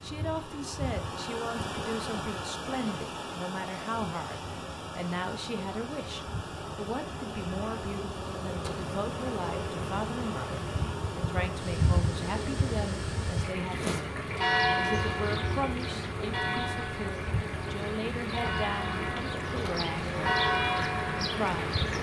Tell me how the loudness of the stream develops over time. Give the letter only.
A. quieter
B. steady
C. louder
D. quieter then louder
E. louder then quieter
B.